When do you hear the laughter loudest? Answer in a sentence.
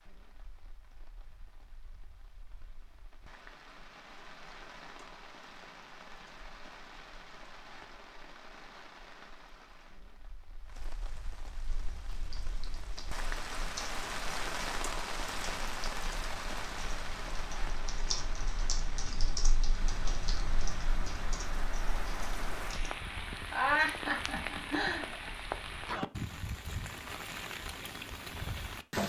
The loudest moment of the laughter is at 24 seconds.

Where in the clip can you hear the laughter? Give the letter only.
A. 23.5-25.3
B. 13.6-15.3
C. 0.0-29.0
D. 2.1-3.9
A.